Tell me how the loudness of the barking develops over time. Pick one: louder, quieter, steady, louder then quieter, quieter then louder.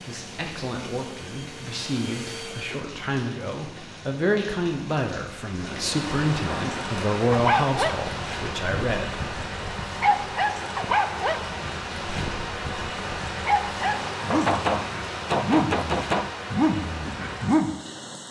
quieter then louder.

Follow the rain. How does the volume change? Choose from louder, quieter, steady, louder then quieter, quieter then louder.
louder.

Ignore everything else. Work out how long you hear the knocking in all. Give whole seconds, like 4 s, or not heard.
2 s.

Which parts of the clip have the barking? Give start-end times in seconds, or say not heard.
6.5-17.8.